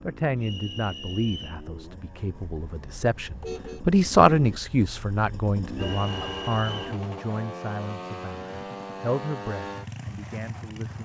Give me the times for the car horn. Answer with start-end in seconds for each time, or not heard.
2.3-3.9, 5.7-7.0.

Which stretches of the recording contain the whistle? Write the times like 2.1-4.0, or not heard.
0.4-1.6, 5.8-6.8.